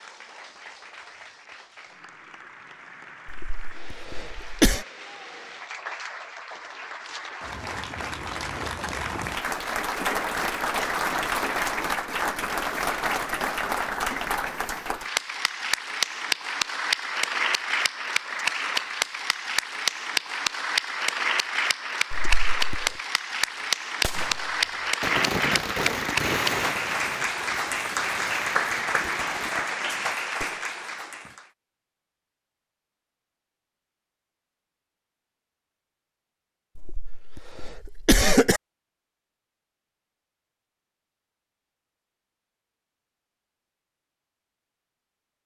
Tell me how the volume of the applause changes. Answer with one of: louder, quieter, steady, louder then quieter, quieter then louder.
louder.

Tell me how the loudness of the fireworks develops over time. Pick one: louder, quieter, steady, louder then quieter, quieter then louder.
quieter.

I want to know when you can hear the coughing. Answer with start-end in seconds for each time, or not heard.
3.2-4.8, 22.1-22.9, 36.8-38.6.